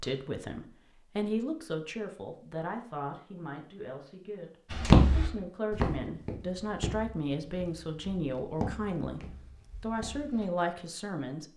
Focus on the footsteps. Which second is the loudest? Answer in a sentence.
The loudest moment of the footsteps is at 5 seconds.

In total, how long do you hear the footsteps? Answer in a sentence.
The footsteps can be heard for 6 seconds in total.